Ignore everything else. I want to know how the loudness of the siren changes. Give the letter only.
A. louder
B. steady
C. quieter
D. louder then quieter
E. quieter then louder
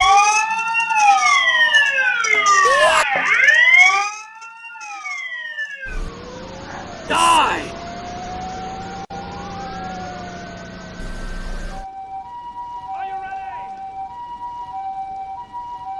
C.